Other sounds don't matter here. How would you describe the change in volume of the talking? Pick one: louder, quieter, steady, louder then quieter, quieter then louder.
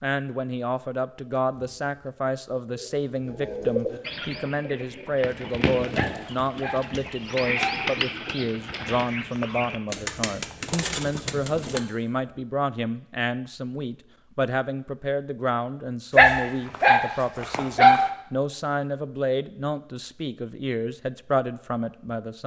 steady.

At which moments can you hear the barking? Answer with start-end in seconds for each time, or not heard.
6.0-7.9, 16.1-18.1.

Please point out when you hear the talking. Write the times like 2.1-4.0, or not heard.
0.0-22.4.